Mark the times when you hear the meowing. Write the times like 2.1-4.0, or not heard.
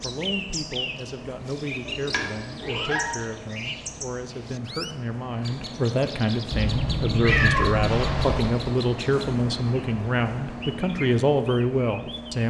1.9-3.0, 6.5-8.6.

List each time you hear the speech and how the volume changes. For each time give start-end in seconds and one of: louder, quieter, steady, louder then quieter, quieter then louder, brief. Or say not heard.
0.0-12.4 louder.